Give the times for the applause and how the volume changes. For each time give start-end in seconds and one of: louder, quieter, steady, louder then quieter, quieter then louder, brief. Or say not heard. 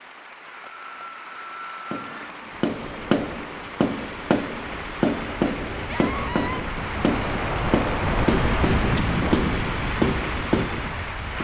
0.0-11.3 louder.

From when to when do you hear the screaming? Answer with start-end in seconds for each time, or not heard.
0.5-2.3, 5.8-6.6.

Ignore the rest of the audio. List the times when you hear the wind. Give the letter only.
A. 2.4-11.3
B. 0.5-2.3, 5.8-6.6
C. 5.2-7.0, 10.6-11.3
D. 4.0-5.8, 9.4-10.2
A.